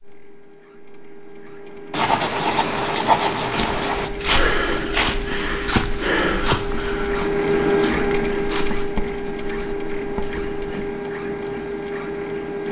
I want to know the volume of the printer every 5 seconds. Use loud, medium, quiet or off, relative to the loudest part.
medium, loud, loud.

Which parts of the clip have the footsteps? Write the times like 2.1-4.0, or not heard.
3.4-8.9.